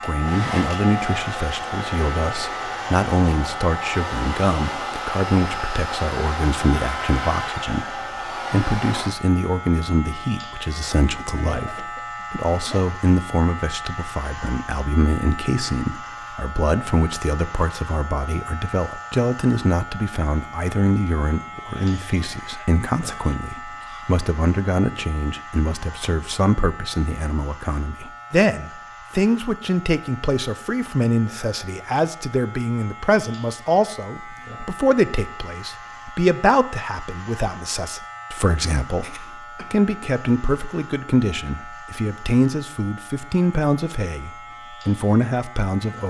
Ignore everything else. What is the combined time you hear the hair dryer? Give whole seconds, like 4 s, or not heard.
9 s.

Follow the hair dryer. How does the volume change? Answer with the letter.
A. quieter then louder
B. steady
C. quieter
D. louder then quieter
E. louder
B.